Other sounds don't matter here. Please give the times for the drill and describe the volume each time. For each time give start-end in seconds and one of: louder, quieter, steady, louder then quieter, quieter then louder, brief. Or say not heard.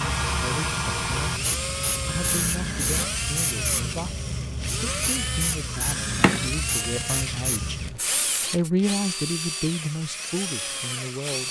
0.0-11.4 steady.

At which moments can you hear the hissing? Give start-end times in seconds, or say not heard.
0.0-8.7.